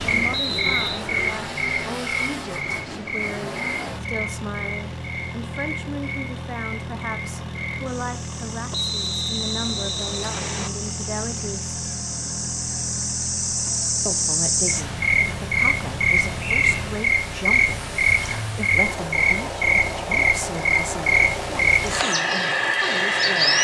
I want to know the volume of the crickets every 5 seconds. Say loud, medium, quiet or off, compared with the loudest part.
medium, quiet, medium, loud, loud.